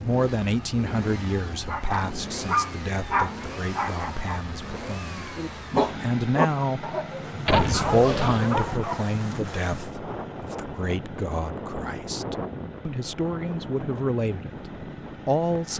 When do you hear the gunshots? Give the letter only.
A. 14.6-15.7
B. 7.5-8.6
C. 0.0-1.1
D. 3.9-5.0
B.